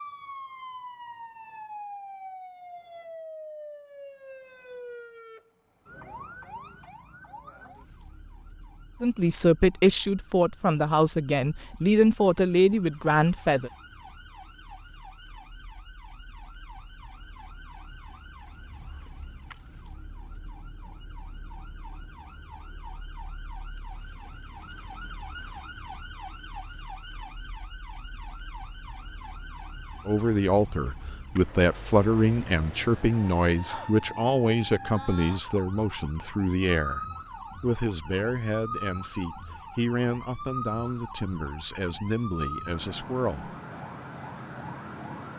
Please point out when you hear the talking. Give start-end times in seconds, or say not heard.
9.0-13.7, 30.1-43.5.